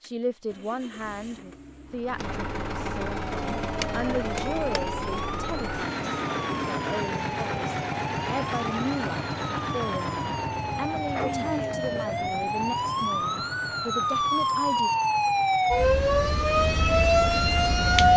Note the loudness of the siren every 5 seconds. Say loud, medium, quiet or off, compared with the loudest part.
quiet, quiet, medium, loud.